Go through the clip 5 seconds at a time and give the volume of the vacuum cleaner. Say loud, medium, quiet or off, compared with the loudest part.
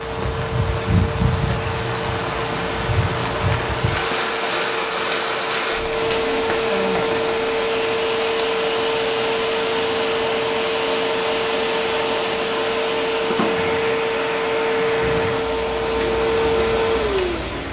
medium, loud, loud, loud.